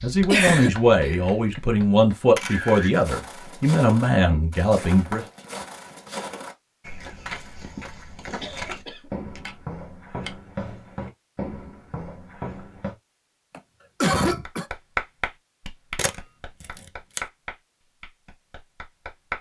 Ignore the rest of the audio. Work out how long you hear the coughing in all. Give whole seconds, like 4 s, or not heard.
4 s.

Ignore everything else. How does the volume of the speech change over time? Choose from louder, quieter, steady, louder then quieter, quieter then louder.
steady.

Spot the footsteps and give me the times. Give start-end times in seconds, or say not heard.
2.5-12.9.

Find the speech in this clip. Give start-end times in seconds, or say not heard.
0.0-5.2.